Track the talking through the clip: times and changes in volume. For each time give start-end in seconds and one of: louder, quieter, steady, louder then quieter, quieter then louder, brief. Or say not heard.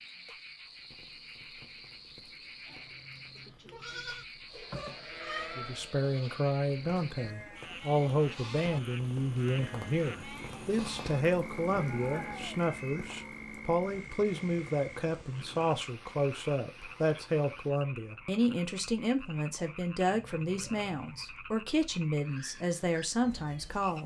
5.5-24.0 steady.